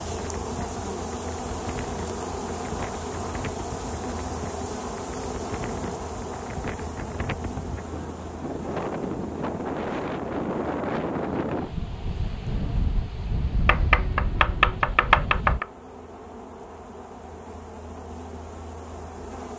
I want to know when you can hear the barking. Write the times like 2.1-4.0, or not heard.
not heard.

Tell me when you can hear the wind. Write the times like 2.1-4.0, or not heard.
0.0-15.6.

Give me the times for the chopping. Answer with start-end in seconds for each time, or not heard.
13.7-15.7.